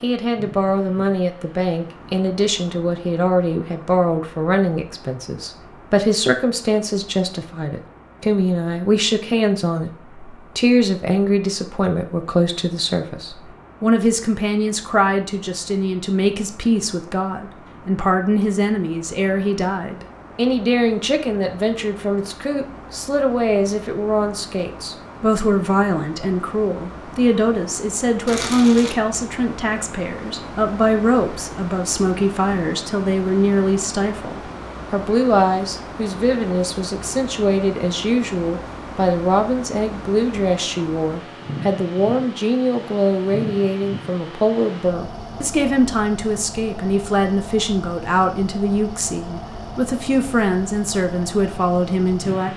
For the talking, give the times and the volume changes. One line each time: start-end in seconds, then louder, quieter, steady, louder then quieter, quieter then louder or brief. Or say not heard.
0.0-52.5 steady.